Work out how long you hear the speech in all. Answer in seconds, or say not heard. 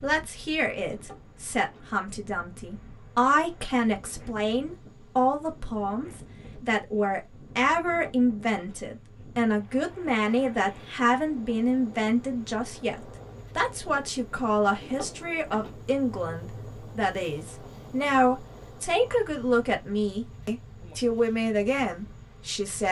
23 s.